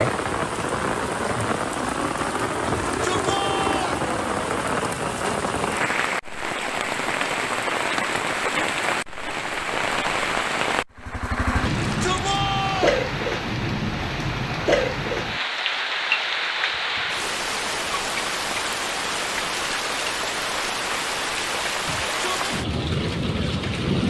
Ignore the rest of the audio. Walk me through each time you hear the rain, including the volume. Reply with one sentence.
You can hear the rain from 0.0 to 24.0 s, at a steady volume.